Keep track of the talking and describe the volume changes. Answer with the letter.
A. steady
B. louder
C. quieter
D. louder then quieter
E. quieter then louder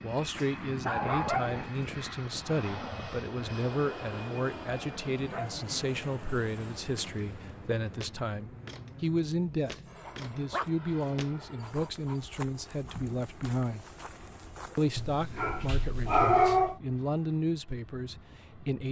A.